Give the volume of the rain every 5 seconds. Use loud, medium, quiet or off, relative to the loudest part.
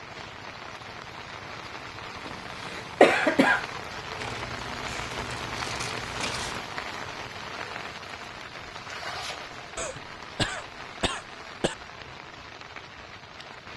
loud, loud, medium.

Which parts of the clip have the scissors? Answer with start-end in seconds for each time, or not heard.
4.2-6.7.